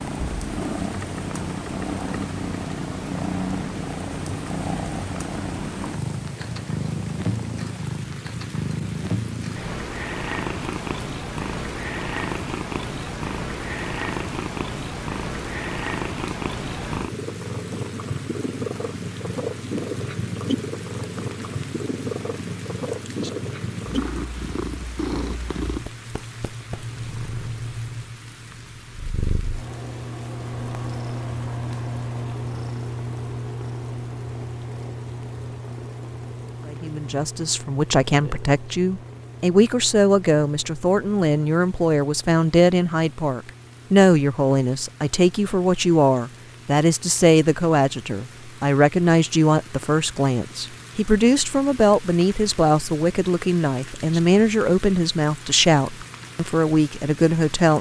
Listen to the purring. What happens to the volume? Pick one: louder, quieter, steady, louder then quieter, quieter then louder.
quieter.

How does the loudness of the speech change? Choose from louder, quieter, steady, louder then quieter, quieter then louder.
steady.